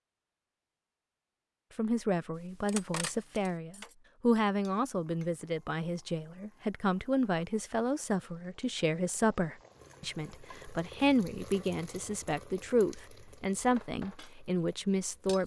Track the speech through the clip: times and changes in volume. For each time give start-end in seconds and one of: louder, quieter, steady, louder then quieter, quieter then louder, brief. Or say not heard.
1.8-15.4 steady.